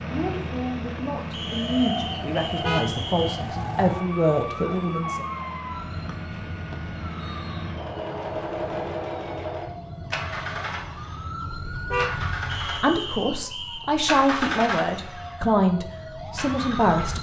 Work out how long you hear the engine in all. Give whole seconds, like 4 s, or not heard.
17 s.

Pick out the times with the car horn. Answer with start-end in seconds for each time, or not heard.
2.5-3.0, 11.5-12.2.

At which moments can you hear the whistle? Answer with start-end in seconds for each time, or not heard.
1.3-3.4, 6.0-7.7, 12.4-13.9.